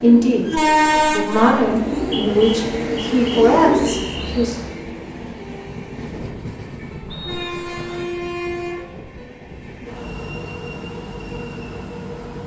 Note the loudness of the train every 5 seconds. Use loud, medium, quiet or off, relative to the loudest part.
loud, medium, medium.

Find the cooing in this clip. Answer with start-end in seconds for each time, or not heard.
0.0-4.8.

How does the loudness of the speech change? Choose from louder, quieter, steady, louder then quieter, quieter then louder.
louder.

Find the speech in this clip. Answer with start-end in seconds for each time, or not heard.
0.0-4.6.